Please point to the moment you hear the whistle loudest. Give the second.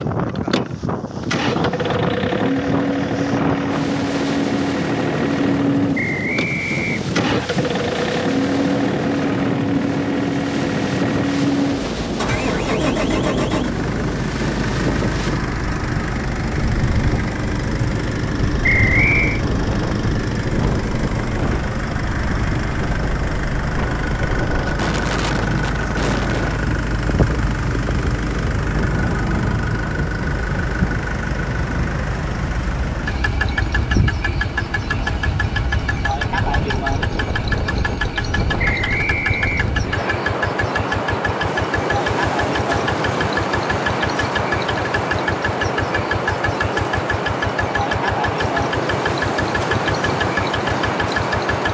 19 s.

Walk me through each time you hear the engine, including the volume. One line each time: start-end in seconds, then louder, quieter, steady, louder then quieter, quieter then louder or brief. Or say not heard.
0.0-51.7 steady.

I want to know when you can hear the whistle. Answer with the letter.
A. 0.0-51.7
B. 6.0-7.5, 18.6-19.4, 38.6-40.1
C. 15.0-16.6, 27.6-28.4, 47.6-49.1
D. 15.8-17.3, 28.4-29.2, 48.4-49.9
B.